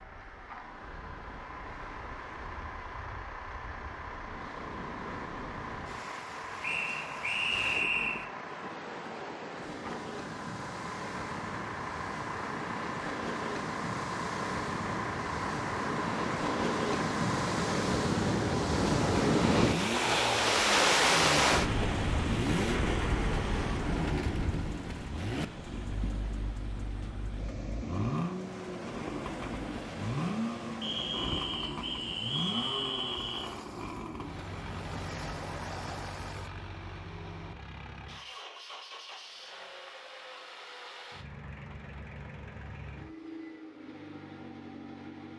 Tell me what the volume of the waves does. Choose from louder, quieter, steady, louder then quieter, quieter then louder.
louder then quieter.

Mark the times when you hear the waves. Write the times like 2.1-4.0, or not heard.
0.0-36.5.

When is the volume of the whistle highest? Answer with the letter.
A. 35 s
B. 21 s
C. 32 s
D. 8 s
D.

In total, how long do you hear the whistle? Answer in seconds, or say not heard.
4 s.